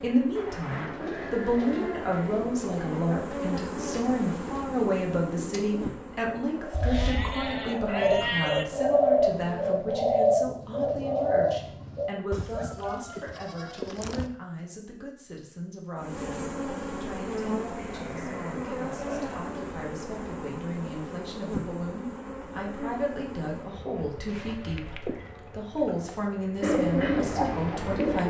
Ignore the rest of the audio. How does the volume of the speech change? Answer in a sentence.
The volume of the speech goes down, then up.